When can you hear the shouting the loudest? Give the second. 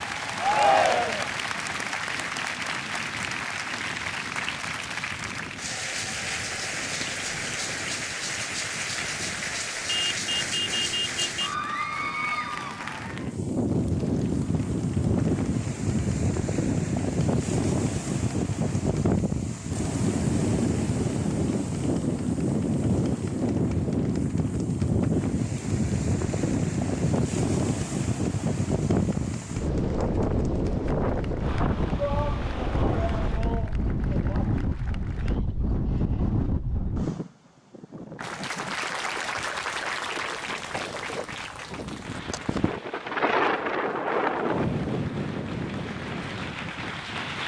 1 s.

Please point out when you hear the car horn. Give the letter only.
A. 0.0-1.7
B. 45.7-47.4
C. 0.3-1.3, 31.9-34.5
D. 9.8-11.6
D.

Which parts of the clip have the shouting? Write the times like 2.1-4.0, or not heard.
0.3-1.3, 31.9-34.5.